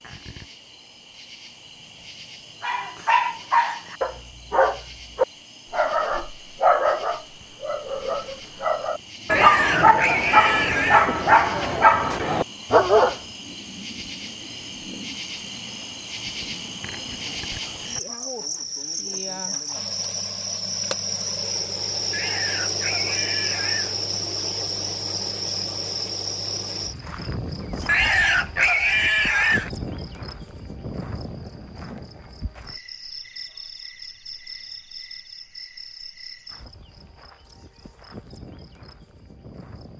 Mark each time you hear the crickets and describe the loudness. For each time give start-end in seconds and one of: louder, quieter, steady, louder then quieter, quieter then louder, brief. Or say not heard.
0.0-39.9 louder then quieter.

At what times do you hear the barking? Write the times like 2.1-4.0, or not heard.
2.6-13.2.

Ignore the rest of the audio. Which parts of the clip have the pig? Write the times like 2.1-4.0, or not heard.
9.3-11.1, 22.1-23.9, 27.9-29.7.